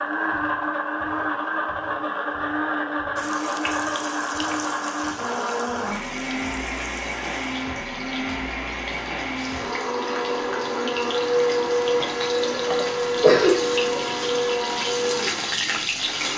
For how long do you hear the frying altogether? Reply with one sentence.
You can hear the frying for 13 seconds altogether.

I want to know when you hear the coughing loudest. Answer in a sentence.
The volume of the coughing peaks at 13 seconds.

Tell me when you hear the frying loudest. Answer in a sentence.
The volume of the frying peaks at 16 seconds.